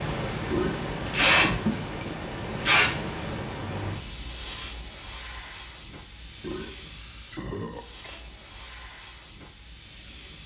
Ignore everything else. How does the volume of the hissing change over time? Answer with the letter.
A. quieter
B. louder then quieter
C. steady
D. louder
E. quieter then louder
A.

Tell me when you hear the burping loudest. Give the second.
1 s.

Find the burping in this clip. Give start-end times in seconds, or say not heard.
0.5-1.6, 6.4-8.3.